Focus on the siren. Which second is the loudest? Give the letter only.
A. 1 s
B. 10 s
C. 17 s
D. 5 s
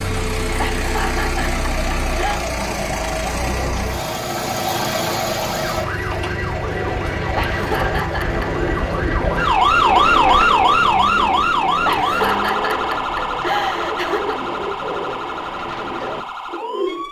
B.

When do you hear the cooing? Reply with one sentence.
You can hear the cooing from 6.5 to 17.0 s.